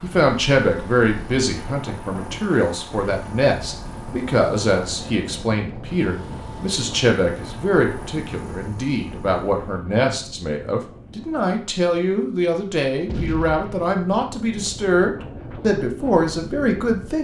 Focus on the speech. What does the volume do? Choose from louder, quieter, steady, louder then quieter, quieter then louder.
steady.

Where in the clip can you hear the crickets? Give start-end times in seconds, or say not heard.
not heard.